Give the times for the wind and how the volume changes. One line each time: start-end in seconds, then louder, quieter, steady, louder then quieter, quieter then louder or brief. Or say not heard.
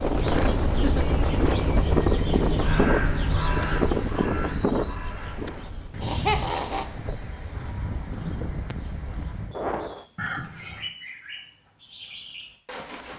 0.0-10.1 quieter.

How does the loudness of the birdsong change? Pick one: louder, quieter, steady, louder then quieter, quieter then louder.
quieter then louder.